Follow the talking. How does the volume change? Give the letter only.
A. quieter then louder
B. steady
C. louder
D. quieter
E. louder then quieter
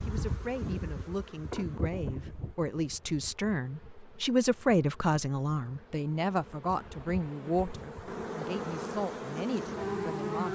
E.